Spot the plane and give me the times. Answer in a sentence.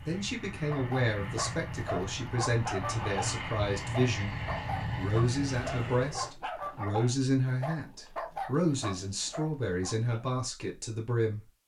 You can hear the plane from 0.0 to 6.3 s.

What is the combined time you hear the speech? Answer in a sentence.
The speech can be heard for 11 seconds in total.